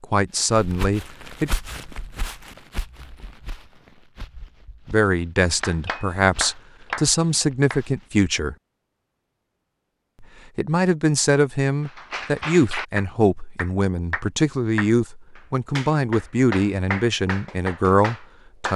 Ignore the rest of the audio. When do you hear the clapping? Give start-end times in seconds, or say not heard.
5.6-7.8, 11.8-18.7.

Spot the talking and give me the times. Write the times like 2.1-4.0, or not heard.
0.0-1.5, 4.8-8.6, 10.2-18.7.